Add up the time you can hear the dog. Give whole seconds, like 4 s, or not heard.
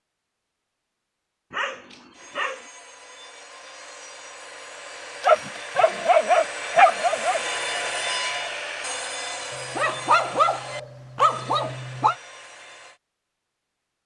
6 s.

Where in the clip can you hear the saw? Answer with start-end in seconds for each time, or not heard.
2.1-13.0.